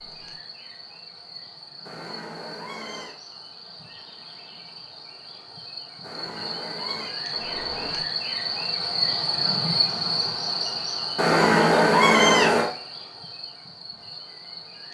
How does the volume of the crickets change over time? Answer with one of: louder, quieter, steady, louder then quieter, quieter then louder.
louder then quieter.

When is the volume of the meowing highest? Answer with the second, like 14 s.
12 s.